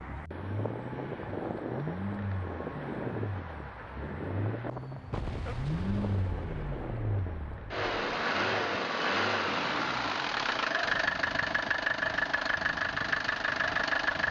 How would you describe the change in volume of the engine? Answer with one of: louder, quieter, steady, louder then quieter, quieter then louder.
louder.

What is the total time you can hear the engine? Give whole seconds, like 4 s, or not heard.
14 s.